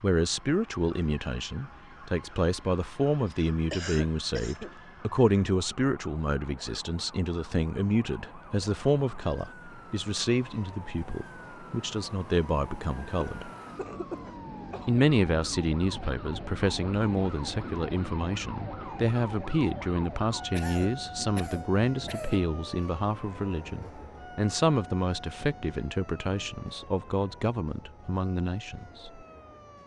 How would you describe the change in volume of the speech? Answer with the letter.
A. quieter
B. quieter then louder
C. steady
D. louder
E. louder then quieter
C.